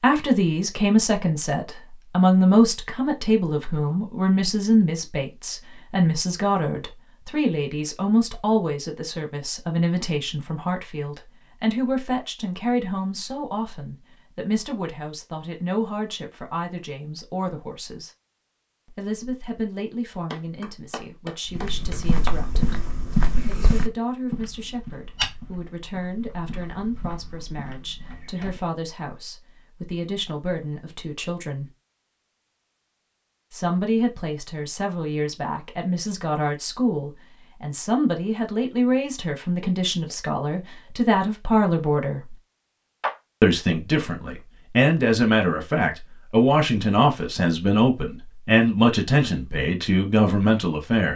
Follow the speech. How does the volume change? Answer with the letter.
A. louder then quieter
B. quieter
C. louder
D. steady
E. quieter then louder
E.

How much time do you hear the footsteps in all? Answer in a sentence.
The footsteps can be heard for 7 seconds in total.